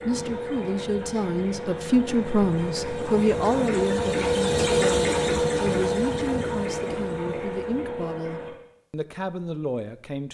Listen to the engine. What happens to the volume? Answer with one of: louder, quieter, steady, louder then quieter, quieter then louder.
louder then quieter.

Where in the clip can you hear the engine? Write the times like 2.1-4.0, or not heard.
0.0-8.5.